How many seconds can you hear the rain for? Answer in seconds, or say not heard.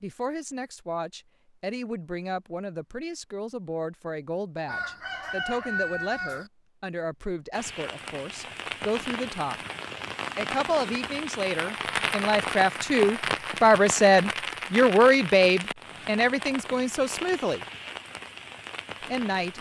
12 s.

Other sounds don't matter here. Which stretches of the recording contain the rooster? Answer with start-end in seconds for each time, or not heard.
4.7-6.5.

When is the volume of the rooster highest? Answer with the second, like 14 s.
6 s.